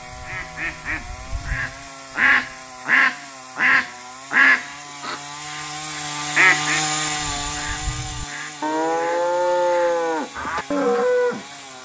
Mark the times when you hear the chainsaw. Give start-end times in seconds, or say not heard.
0.0-11.8.